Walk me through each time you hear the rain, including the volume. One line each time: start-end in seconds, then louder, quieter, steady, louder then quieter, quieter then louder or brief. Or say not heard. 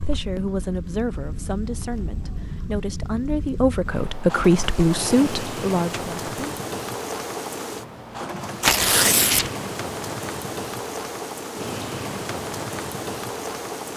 0.0-13.9 louder.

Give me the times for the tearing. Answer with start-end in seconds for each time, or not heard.
8.6-9.5.